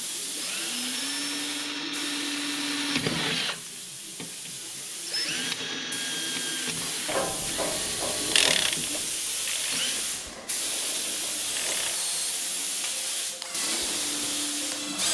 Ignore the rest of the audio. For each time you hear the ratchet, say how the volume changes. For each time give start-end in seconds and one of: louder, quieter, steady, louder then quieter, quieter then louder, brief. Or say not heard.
7.0-11.9 louder then quieter.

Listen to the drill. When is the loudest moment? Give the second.
3 s.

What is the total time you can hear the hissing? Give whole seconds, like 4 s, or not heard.
15 s.